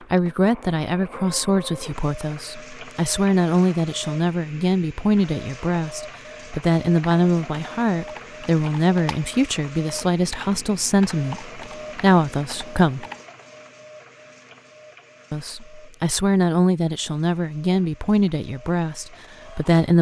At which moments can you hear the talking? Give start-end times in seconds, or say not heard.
0.1-13.1, 15.3-19.9.